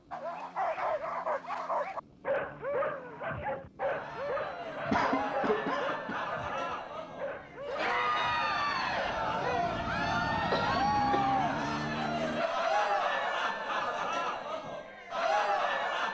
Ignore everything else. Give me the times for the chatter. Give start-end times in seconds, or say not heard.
3.8-16.0.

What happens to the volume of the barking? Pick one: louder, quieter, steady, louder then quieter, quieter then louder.
quieter.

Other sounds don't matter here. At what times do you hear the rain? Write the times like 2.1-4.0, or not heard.
not heard.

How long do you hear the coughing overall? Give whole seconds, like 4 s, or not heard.
2 s.